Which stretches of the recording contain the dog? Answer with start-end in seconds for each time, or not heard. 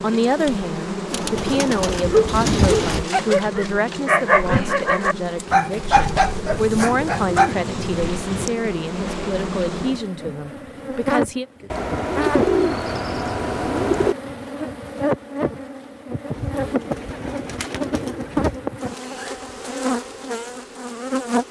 2.0-7.5.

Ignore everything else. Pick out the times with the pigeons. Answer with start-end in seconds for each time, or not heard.
1.1-3.0, 6.5-8.5, 11.7-14.2, 16.3-18.6.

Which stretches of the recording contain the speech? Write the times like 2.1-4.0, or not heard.
0.0-11.4.